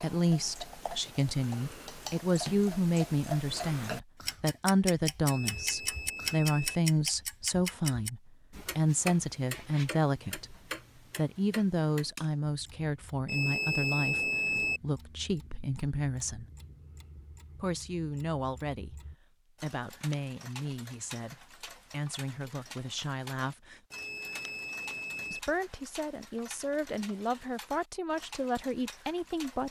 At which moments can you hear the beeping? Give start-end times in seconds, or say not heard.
5.2-6.8, 13.2-14.8, 23.9-25.4.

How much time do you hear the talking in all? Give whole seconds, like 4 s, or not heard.
26 s.